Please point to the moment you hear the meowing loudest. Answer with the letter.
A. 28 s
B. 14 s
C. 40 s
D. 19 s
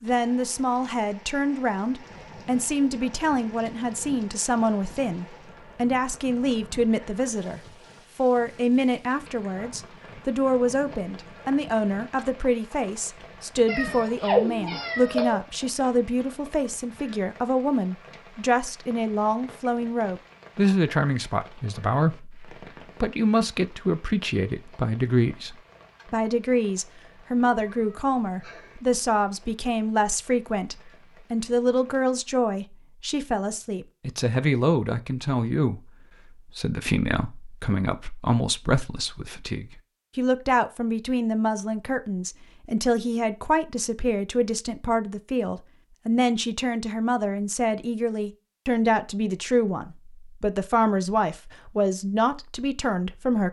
B.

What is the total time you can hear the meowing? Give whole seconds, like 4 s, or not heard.
3 s.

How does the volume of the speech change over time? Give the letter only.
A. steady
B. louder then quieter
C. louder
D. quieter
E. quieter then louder
A.